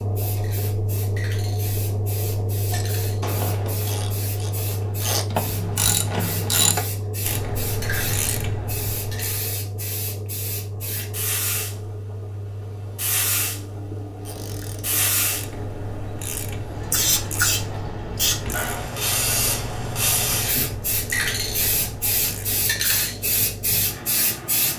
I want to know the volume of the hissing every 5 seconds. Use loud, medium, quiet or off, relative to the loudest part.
quiet, medium, medium, loud, loud.